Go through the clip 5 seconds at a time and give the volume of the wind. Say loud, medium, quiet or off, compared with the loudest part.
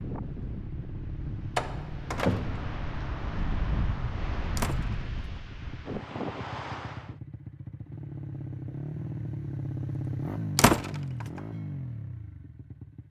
loud, loud, off.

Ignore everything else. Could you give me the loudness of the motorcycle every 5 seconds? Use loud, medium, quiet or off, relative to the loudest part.
medium, loud, loud.